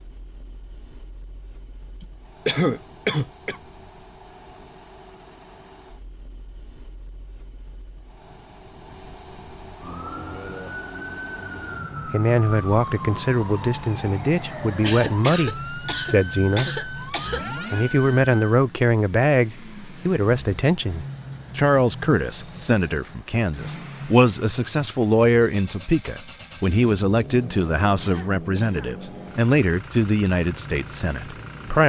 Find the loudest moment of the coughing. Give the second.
3 s.